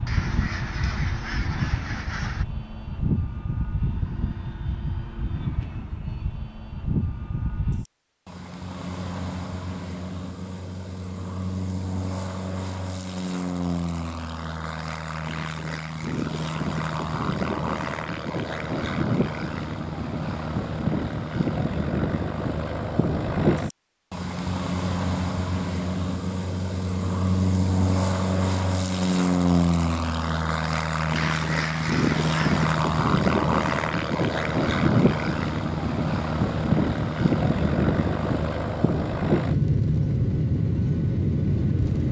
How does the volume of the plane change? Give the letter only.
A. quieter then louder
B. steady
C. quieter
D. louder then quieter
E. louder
E.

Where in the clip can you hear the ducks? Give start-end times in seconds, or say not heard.
0.1-2.5, 31.1-32.7.